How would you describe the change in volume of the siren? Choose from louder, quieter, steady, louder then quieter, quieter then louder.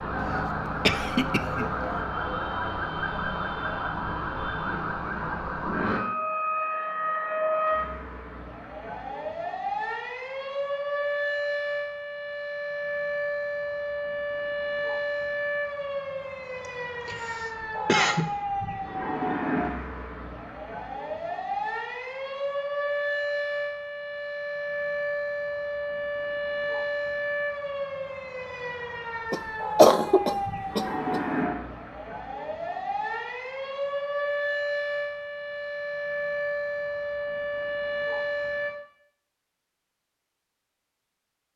steady.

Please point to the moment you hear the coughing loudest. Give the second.
30 s.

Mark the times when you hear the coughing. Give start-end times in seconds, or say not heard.
0.2-1.9, 17.1-18.3, 29.3-31.2.